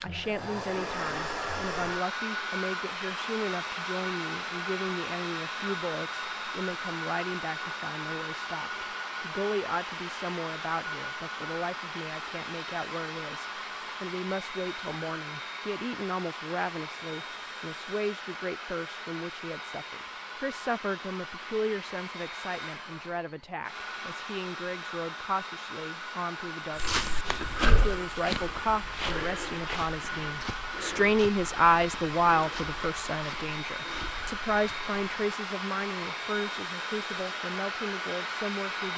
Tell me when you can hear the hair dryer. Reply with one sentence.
You can hear the hair dryer from 0.0 to 38.9 s.